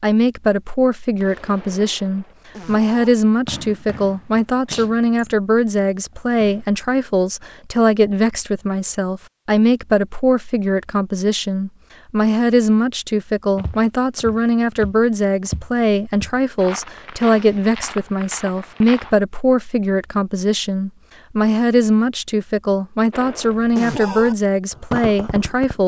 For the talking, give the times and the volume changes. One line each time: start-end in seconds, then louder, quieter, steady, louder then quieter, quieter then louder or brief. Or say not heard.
0.0-25.8 steady.